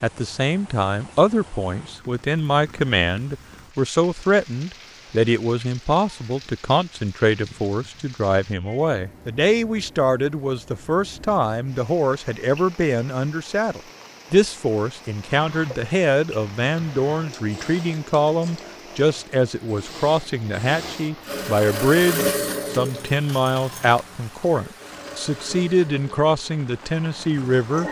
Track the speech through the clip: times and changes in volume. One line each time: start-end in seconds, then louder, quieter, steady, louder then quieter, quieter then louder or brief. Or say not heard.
0.0-27.8 steady.